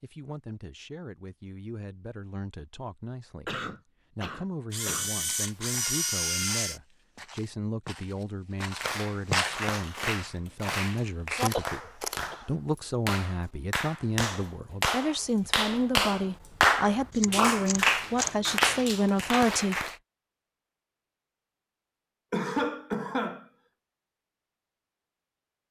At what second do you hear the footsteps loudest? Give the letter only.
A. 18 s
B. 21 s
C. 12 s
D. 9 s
D.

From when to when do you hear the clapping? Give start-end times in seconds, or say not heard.
8.6-19.9.